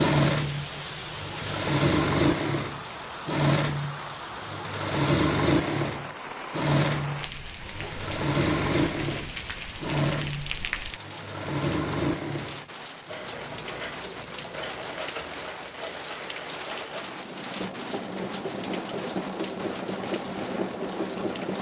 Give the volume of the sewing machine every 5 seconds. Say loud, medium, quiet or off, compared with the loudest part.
loud, loud, medium, medium, medium.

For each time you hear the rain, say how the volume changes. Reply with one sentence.
You can hear the rain from 0.2 to 21.5 s, at a steady volume.